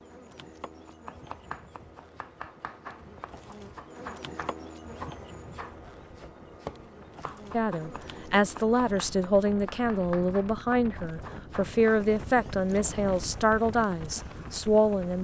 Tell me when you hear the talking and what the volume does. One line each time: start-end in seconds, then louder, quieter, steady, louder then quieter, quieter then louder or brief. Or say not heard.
7.5-15.1 steady.